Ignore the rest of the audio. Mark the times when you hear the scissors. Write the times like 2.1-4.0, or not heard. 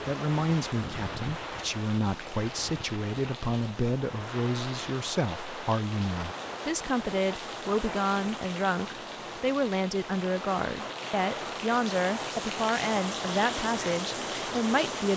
not heard.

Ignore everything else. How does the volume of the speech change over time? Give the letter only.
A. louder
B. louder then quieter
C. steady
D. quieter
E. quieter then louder
C.